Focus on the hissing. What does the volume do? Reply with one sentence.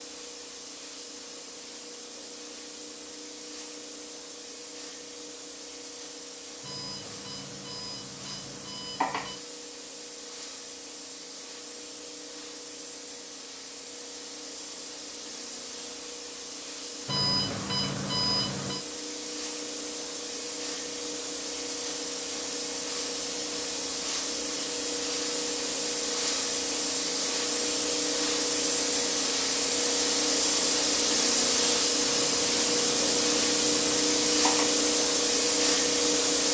The loudness of the hissing goes up.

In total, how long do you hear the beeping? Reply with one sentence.
The beeping can be heard for 7 seconds in total.